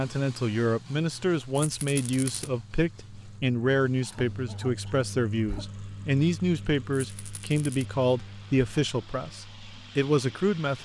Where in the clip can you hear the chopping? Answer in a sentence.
The chopping can't be heard in this clip.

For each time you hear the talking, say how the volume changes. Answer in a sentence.
The talking can be heard from 0.0 to 10.8 s, at a steady volume.